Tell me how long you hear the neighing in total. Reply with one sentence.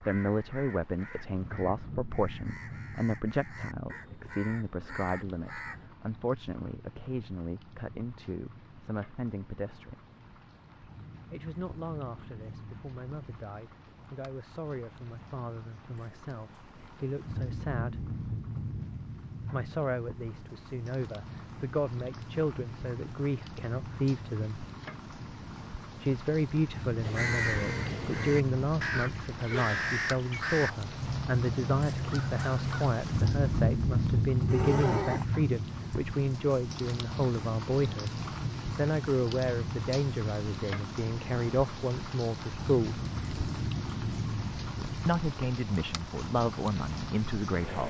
The neighing can be heard for 2 seconds in total.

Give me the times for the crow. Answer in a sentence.
The crow can be heard from 0.0 to 5.9 s and from 27.0 to 33.0 s.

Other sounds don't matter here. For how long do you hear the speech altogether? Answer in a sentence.
You can hear the speech for 41 seconds altogether.